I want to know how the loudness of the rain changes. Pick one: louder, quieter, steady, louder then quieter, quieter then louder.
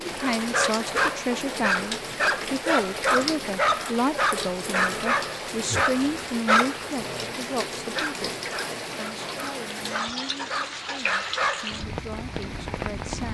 steady.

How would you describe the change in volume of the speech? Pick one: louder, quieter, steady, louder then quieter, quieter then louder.
quieter.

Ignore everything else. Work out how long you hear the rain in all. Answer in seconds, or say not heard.
13 s.